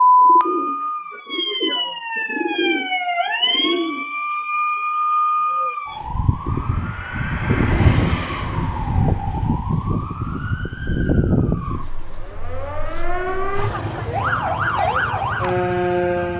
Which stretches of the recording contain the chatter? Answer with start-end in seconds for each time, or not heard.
not heard.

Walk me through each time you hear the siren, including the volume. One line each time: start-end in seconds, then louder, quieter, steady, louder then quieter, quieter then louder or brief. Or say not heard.
0.0-16.3 steady.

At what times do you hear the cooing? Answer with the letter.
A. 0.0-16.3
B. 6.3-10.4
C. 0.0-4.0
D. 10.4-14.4
C.